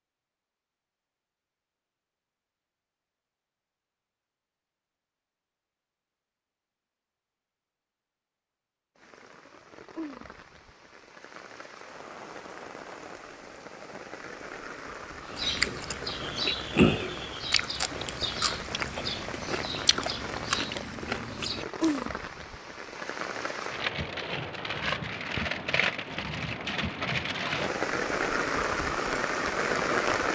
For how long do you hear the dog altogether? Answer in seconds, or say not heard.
not heard.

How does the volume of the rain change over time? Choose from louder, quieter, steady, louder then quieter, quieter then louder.
louder.